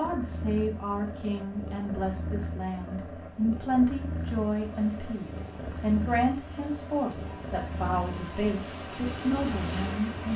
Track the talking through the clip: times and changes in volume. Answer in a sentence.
The talking can be heard from 0.0 to 10.3 s, at a steady volume.